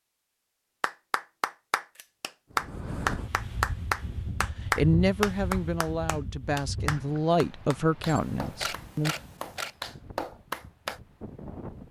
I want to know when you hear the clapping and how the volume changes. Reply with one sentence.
The clapping can be heard from 0.8 to 11.0 s, getting quieter.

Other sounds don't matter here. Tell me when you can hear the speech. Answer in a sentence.
You can hear the speech from 4.8 to 9.2 s.